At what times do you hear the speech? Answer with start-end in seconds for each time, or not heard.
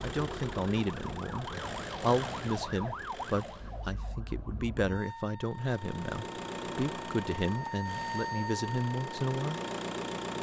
0.0-9.6.